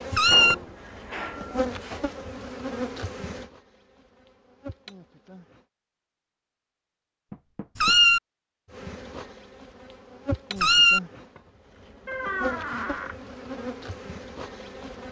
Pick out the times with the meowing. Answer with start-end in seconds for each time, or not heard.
0.1-0.6, 7.8-8.2, 10.6-11.0.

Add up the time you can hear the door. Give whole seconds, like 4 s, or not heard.
4 s.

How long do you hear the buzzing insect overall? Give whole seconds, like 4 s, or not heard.
12 s.